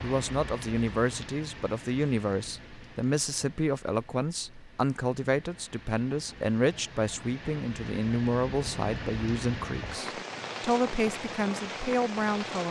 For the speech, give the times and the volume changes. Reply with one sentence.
The speech can be heard from 0.0 to 12.6 s, at a steady volume.